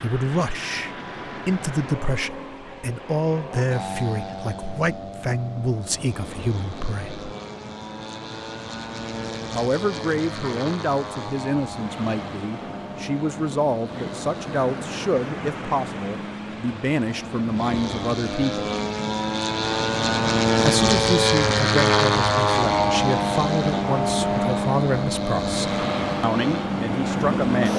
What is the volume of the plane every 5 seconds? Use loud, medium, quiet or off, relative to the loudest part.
quiet, quiet, quiet, medium, loud, medium.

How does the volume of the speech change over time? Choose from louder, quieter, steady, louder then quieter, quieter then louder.
steady.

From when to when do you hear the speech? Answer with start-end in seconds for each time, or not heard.
0.0-7.2, 9.5-18.7, 20.6-27.7.